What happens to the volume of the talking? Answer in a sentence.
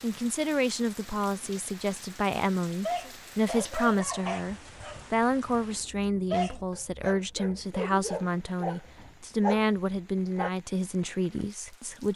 The loudness of the talking stays about the same.